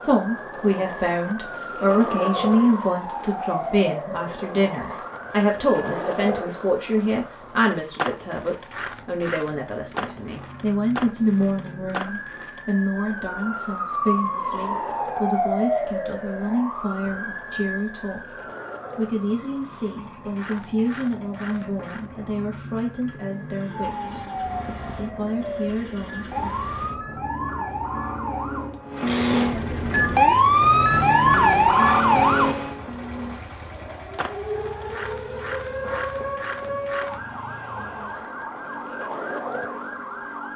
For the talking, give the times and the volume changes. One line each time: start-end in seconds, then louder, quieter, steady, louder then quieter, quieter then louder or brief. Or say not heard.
0.0-26.4 quieter.